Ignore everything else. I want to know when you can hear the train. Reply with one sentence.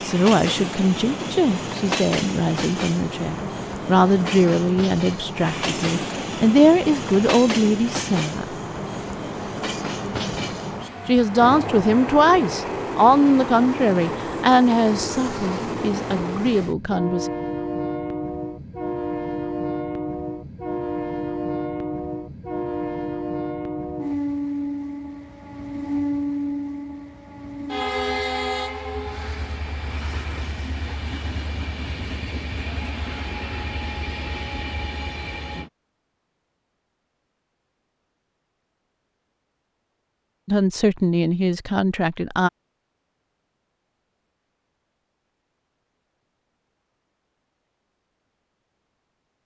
You can hear the train from 0.0 to 35.7 s.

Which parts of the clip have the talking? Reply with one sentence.
You can hear the talking from 0.0 to 8.6 s, from 11.1 to 17.3 s and from 40.5 to 42.5 s.